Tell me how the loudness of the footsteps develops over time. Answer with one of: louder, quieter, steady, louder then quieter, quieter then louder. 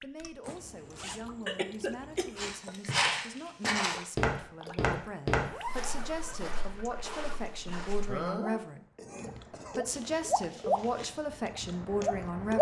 quieter.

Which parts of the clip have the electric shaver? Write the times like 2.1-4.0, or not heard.
not heard.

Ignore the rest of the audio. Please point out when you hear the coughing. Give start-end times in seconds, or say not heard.
1.4-2.8, 8.1-9.8.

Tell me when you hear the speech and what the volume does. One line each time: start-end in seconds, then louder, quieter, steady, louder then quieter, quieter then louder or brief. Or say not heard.
0.0-12.5 louder.